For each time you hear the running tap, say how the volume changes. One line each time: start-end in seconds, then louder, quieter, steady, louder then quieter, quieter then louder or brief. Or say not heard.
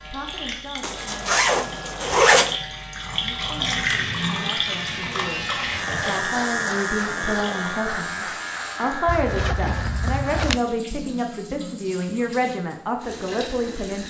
0.0-14.0 louder then quieter.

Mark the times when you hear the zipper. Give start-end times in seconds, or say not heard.
0.8-2.5, 9.1-10.6.